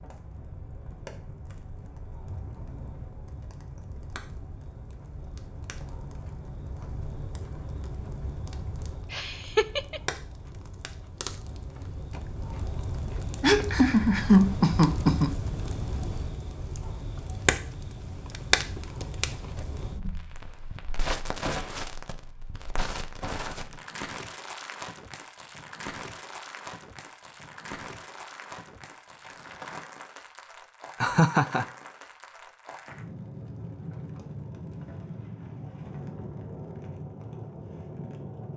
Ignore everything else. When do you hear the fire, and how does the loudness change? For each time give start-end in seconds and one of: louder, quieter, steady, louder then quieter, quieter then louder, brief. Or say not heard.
0.0-38.5 louder then quieter.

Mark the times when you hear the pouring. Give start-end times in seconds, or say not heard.
not heard.